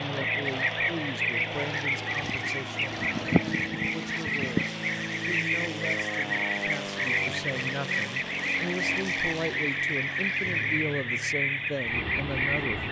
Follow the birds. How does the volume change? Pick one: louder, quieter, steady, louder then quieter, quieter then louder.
steady.